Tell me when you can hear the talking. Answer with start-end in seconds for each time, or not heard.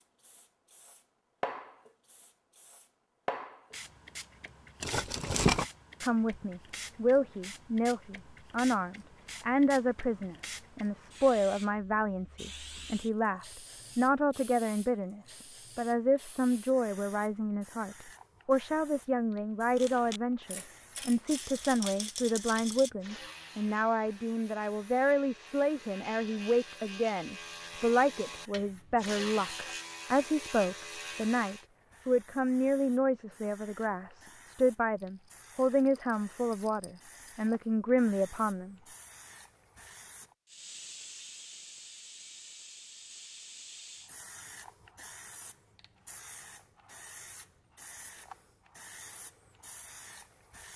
6.0-38.8.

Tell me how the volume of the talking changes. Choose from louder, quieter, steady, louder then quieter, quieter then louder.
steady.